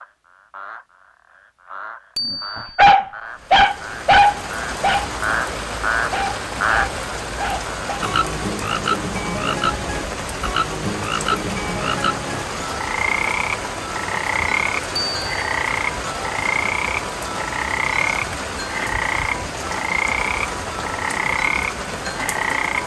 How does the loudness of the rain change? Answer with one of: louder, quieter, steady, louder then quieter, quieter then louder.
steady.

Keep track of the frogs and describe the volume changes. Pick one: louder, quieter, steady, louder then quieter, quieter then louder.
louder.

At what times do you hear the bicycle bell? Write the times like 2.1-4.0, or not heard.
2.1-2.8, 14.9-15.4.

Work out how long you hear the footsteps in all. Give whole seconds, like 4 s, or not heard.
not heard.